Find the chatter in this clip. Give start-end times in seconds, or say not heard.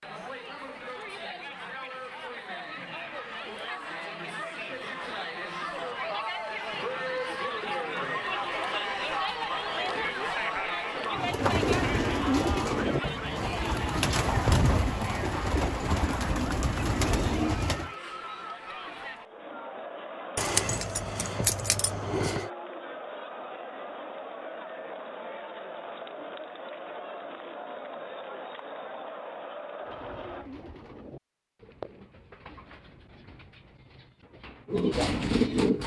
0.0-30.5.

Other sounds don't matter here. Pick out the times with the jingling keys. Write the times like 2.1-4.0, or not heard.
20.4-22.5.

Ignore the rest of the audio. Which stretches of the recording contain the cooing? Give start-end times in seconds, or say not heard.
11.1-17.9, 29.8-35.8.